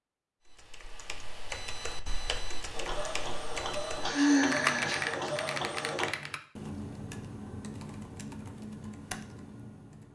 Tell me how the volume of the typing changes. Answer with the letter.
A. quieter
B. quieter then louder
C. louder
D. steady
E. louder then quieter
E.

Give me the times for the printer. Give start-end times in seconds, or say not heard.
2.7-6.1.